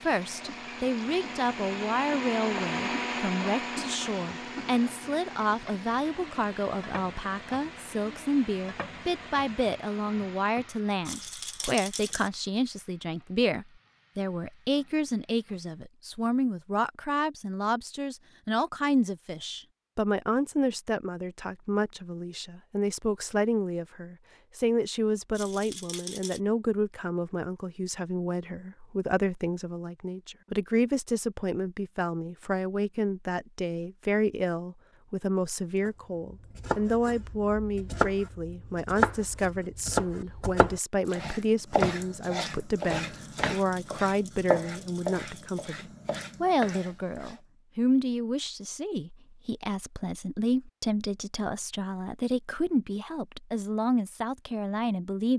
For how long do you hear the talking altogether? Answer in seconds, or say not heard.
55 s.